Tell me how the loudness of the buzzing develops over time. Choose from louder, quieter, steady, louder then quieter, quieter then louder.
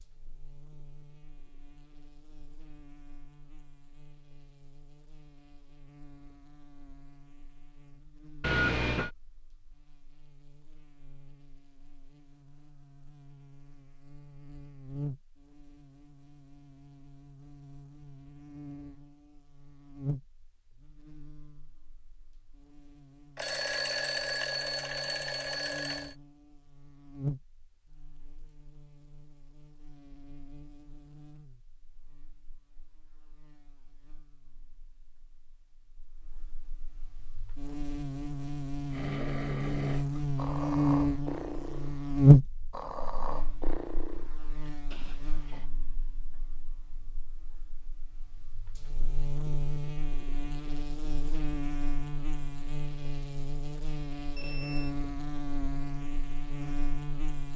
louder then quieter.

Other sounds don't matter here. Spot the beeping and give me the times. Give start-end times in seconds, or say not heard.
8.4-9.1, 23.4-26.1, 54.4-55.0.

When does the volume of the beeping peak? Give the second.
9 s.